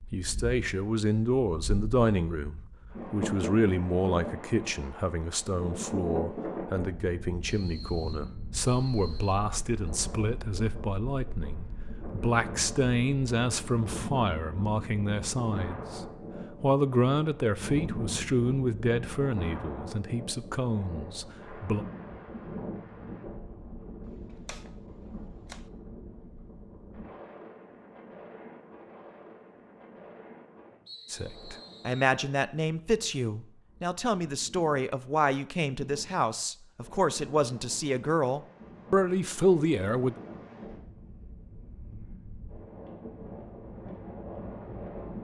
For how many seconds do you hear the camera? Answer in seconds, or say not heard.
2 s.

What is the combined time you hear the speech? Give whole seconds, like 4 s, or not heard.
31 s.